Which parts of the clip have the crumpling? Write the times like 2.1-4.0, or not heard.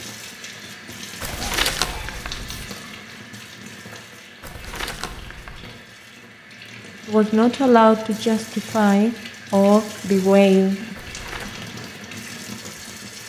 1.2-2.7, 4.4-5.7, 10.9-11.6.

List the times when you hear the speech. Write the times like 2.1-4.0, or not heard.
7.0-10.9.